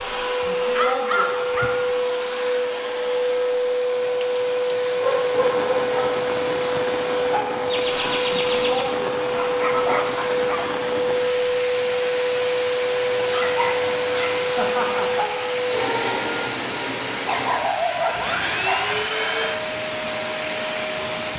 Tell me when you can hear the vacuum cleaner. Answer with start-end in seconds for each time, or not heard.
0.0-21.3.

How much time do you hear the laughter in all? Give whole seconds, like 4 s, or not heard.
2 s.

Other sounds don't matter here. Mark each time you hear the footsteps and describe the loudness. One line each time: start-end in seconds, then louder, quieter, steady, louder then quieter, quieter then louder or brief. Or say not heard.
not heard.